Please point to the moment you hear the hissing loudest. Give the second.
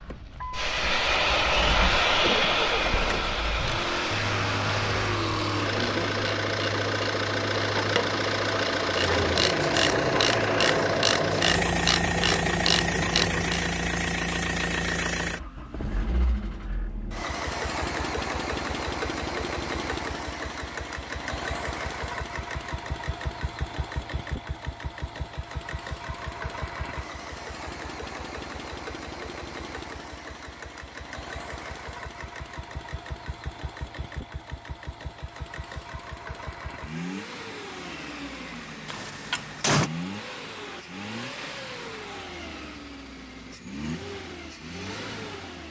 2 s.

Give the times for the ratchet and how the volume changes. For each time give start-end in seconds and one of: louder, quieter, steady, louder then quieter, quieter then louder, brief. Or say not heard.
3.6-13.7 louder.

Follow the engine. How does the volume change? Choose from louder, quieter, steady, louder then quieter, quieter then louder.
quieter.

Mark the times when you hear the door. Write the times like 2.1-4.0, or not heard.
38.9-39.9.